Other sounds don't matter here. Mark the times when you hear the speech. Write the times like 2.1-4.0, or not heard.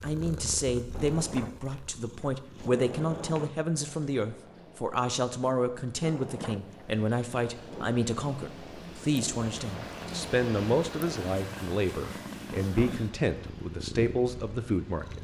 0.0-15.1.